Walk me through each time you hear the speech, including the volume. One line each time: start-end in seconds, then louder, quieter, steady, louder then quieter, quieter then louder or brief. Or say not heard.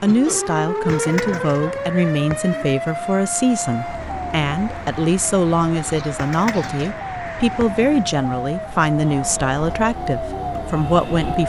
0.0-11.4 steady.